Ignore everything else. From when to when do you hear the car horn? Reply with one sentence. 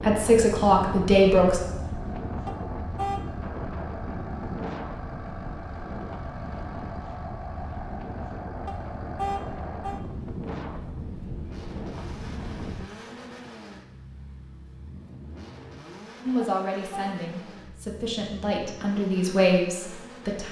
You can hear the car horn from 2.5 to 3.2 s, from 8.7 to 10.0 s and from 16.4 to 17.1 s.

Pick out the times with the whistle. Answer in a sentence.
You can't hear the whistle here.